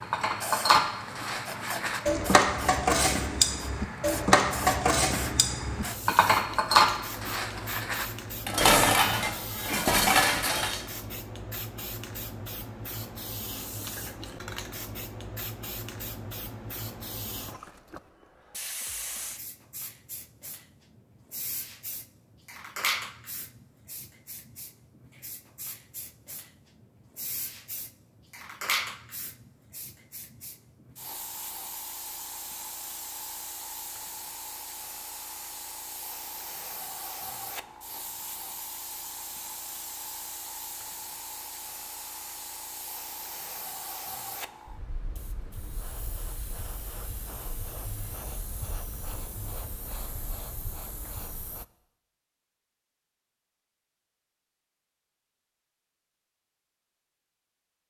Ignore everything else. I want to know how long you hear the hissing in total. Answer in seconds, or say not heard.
52 s.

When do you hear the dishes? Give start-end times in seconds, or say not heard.
0.0-10.8.